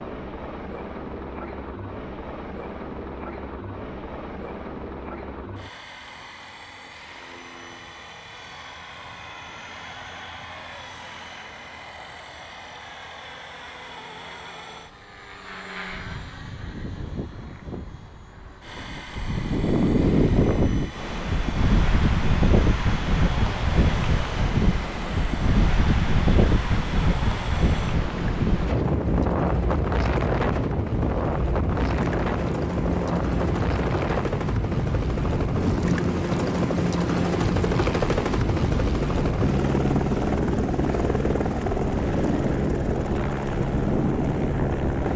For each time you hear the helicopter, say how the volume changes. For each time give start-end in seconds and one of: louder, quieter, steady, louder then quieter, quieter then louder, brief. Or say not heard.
0.0-45.1 louder.